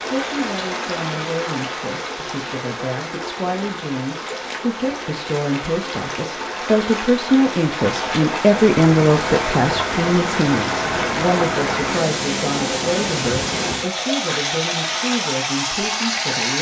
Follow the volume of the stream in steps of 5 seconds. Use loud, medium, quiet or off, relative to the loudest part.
medium, loud, loud, loud.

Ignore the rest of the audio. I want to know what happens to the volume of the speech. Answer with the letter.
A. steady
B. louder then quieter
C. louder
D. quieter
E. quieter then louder
B.